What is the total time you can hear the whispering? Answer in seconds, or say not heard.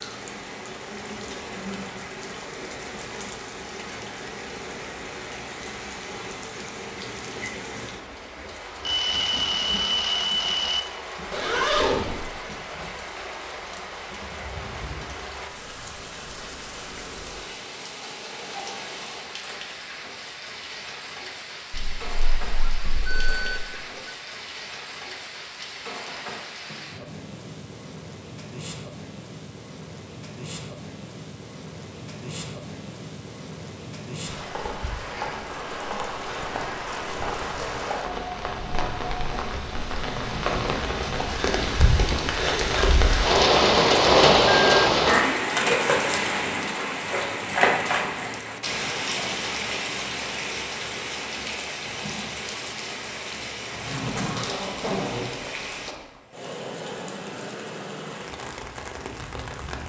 not heard.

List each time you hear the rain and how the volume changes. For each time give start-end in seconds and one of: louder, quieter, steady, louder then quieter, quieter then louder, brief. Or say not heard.
0.0-59.8 louder then quieter.